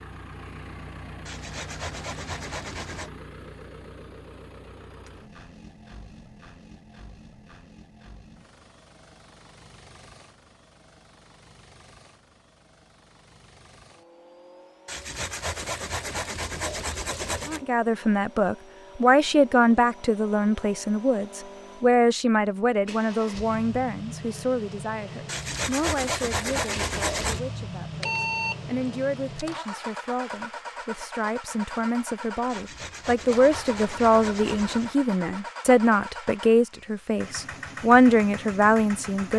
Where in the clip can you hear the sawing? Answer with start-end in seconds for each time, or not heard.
1.2-3.1, 14.8-17.6, 25.2-27.4, 32.5-35.0.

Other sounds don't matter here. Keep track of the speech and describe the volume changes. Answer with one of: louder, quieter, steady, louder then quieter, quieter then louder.
quieter then louder.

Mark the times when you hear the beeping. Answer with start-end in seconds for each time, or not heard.
28.0-28.9.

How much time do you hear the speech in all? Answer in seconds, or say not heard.
22 s.